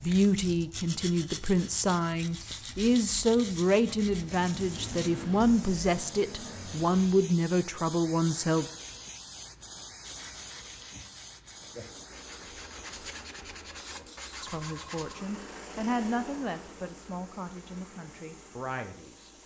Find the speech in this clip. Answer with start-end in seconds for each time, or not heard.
0.0-8.7, 14.4-19.4.